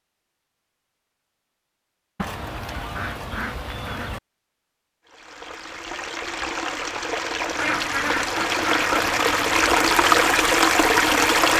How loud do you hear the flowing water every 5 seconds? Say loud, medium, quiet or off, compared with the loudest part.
off, medium, loud.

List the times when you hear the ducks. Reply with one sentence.
The ducks can be heard from 2.1 to 4.2 s and from 7.5 to 9.1 s.